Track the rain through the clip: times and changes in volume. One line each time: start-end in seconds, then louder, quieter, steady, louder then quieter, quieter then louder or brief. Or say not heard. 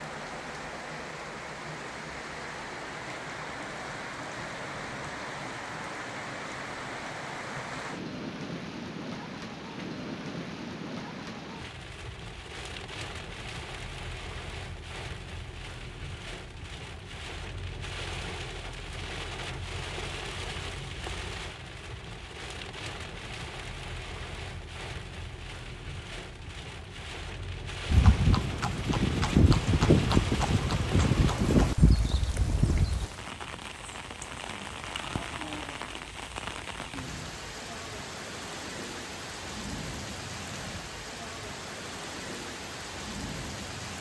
0.0-43.9 steady.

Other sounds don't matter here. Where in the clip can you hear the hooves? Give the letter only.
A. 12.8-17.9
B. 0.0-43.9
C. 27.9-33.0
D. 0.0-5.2
C.